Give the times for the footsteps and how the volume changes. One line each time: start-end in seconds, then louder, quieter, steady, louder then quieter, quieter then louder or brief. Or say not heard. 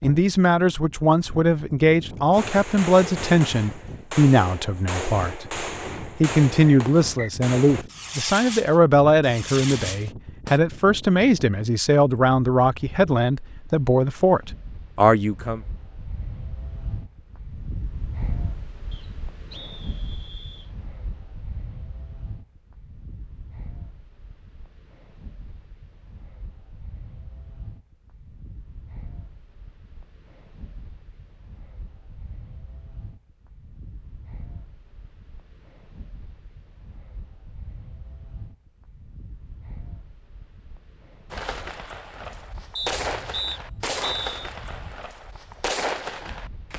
not heard.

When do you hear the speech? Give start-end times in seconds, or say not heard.
0.0-15.6.